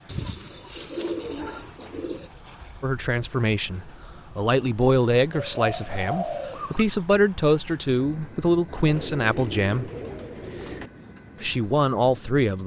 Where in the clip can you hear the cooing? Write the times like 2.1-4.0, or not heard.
0.1-2.3, 5.3-6.8, 8.8-10.9.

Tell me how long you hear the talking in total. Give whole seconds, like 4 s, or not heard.
8 s.